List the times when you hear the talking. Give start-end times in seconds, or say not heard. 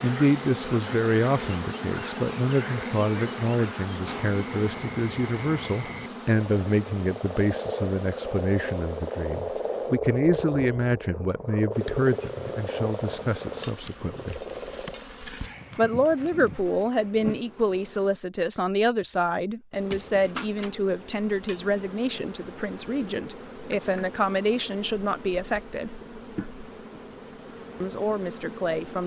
0.0-14.4, 15.8-25.9, 27.8-29.0.